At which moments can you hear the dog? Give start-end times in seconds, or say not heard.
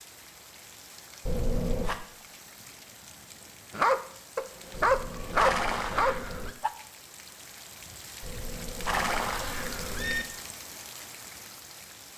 3.7-6.7.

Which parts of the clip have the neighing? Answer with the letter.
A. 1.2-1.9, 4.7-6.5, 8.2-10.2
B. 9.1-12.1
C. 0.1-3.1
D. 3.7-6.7
A.